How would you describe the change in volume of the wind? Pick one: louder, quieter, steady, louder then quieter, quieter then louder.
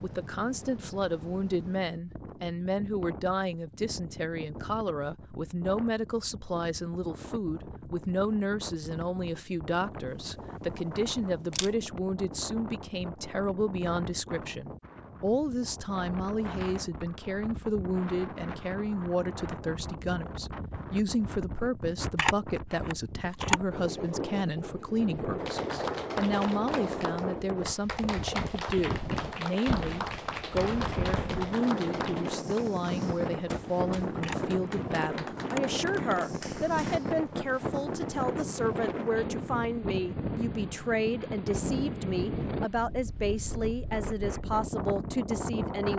louder.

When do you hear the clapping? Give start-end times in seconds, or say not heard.
25.4-37.0.